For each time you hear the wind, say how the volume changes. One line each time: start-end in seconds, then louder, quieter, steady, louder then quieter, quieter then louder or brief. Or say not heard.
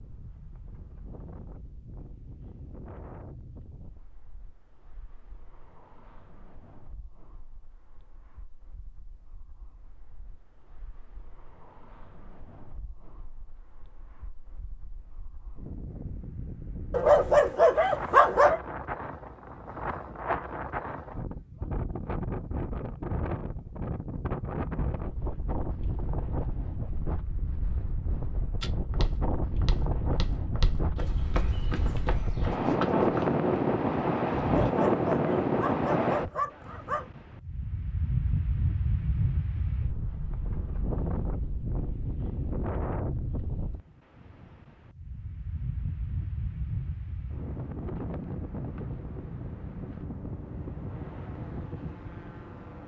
0.0-52.8 louder then quieter.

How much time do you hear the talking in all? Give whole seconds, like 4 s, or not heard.
not heard.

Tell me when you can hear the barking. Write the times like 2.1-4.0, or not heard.
16.9-18.6, 34.4-37.1.